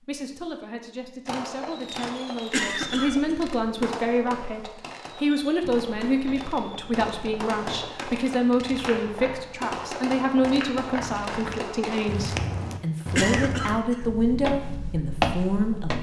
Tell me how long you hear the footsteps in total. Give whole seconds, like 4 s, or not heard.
10 s.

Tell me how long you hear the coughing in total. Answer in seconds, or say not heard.
2 s.